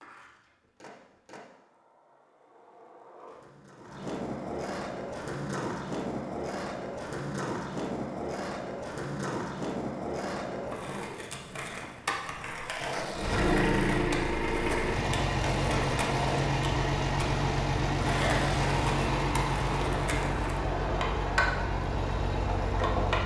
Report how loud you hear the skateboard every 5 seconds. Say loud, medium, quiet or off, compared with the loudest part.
medium, loud, loud, loud, loud.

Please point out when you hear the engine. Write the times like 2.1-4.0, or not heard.
13.1-23.2.